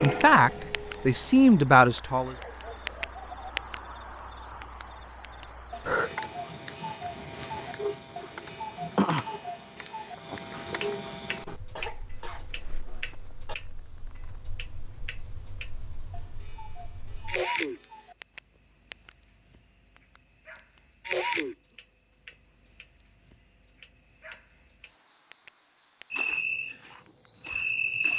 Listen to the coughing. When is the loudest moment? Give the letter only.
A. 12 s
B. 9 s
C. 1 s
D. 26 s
A.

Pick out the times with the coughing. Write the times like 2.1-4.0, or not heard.
11.8-13.6.